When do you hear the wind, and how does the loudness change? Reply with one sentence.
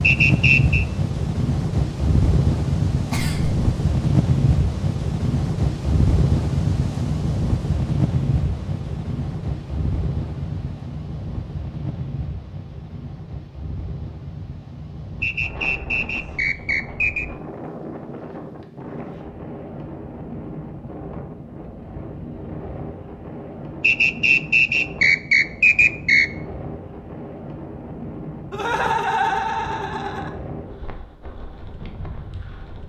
The wind can be heard from 0.0 to 32.8 s, getting quieter.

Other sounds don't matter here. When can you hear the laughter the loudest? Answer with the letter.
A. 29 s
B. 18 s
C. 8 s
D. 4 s
A.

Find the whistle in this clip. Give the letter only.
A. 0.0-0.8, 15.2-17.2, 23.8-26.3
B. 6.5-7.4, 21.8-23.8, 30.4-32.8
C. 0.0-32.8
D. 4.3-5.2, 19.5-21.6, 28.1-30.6
A.